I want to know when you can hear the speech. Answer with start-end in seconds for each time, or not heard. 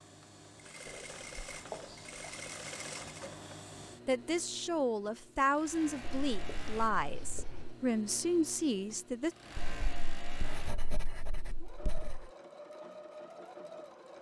4.0-9.3.